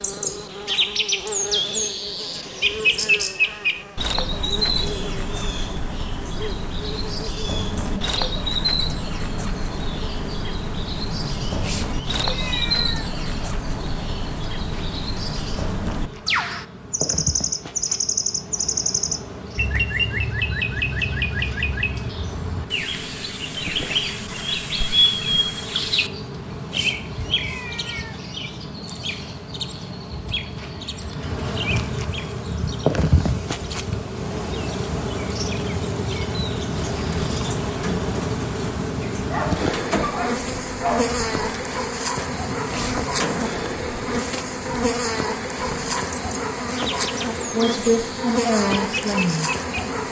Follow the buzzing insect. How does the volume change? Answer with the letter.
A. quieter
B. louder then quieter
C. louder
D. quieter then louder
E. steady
C.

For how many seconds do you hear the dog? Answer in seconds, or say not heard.
2 s.